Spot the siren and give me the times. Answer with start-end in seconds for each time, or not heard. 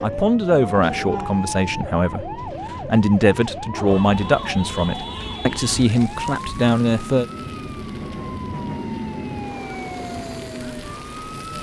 0.0-11.5.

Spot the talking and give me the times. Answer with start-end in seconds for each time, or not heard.
0.0-7.2.